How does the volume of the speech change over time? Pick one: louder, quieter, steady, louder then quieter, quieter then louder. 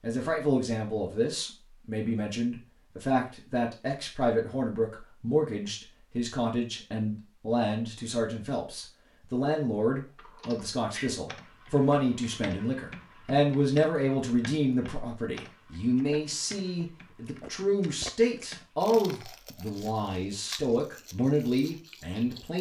steady.